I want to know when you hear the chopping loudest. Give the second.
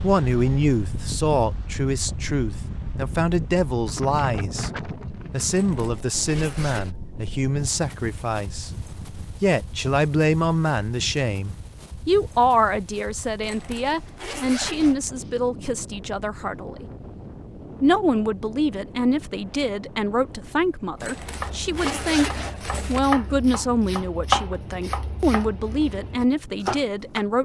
24 s.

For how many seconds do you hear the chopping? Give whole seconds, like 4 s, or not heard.
6 s.